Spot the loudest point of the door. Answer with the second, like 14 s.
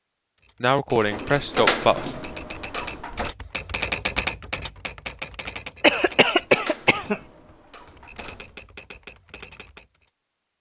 2 s.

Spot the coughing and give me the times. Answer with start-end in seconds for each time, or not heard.
0.6-2.0, 5.8-7.2.